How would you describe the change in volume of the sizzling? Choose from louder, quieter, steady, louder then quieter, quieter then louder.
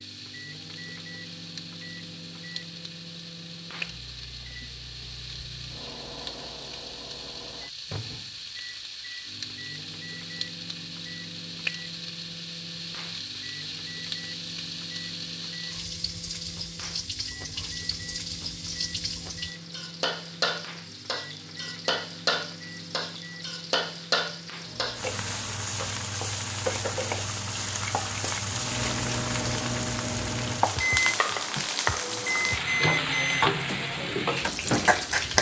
louder.